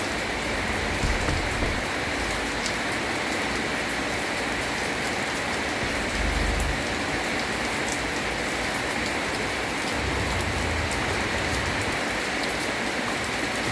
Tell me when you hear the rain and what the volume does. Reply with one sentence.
You can hear the rain from 0.0 to 13.6 s, at a steady volume.